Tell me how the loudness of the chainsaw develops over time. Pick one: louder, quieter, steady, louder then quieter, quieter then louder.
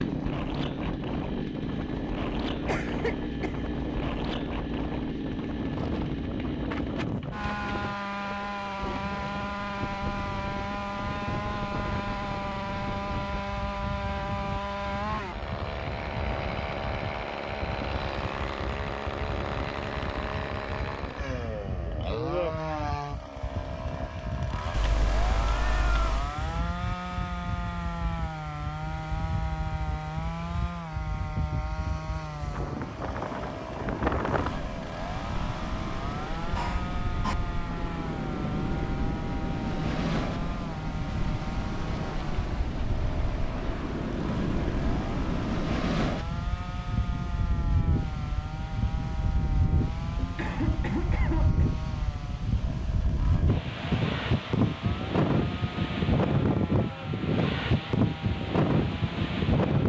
quieter.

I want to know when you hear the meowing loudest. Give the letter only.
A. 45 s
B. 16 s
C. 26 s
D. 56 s
C.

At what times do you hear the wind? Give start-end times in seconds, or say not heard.
0.0-59.8.